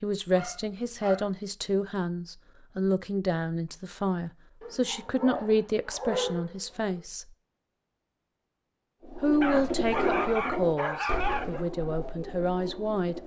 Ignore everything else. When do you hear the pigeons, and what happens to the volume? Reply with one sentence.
You can hear the pigeons from 9.1 to 13.2 s, getting quieter.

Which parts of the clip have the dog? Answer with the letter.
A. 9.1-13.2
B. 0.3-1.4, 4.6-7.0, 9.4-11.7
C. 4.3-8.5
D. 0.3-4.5
B.